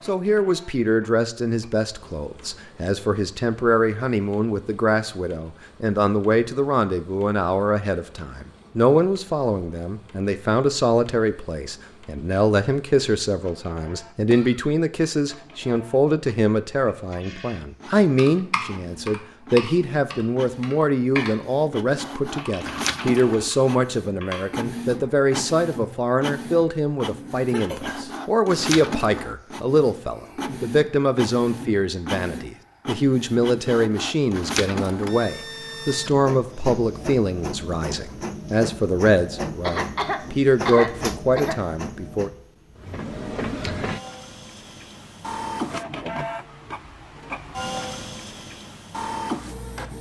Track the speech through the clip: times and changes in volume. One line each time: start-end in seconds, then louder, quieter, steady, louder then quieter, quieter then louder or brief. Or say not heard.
0.1-42.3 steady.